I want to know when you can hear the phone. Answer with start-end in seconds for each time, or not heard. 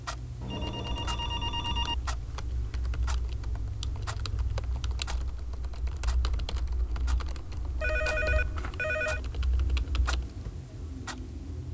0.4-1.9, 7.8-9.2.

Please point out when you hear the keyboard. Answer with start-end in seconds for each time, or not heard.
0.5-10.3.